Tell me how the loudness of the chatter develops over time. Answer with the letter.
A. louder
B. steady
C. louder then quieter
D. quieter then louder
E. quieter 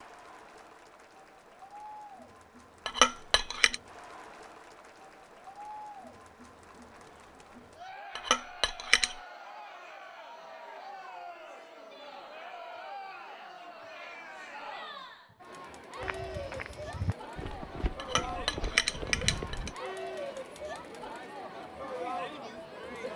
A.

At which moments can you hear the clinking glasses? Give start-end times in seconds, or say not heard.
2.9-3.8, 8.2-9.2, 17.9-19.7.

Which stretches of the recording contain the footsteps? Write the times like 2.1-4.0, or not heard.
16.0-19.8.